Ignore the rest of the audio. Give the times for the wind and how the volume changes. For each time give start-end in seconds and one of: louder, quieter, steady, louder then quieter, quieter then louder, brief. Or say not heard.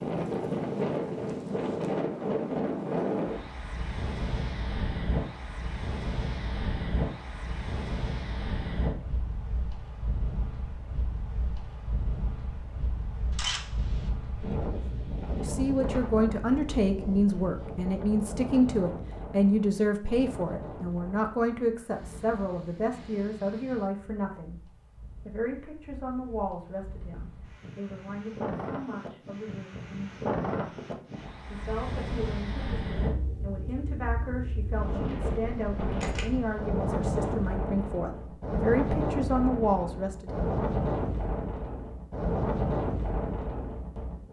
0.0-44.2 quieter then louder.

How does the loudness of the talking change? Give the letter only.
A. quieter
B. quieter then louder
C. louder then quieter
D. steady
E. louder
B.